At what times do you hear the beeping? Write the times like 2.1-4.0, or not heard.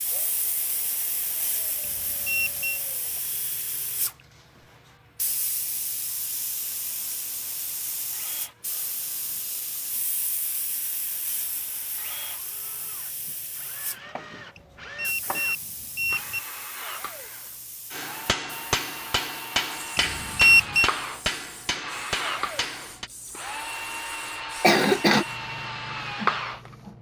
1.8-2.8, 14.6-16.4, 19.9-20.9.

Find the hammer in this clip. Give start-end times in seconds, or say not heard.
17.9-23.1.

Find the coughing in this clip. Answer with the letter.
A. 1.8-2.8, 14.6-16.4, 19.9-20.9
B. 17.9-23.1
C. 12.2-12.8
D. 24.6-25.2
D.